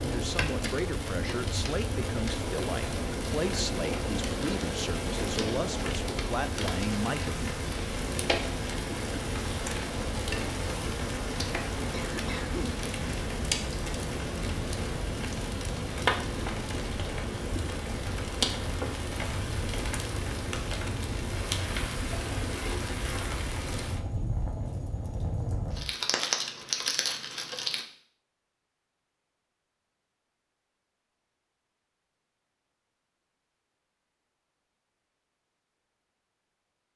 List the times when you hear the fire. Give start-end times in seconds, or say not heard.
0.0-27.9.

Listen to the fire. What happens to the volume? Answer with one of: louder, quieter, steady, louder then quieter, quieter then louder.
steady.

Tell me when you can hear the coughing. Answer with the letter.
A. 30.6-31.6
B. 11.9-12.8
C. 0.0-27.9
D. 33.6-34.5
B.